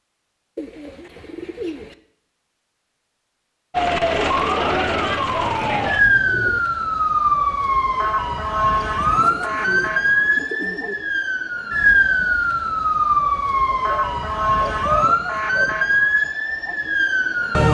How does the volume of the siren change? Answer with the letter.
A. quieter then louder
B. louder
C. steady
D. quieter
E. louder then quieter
C.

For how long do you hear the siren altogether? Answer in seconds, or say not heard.
14 s.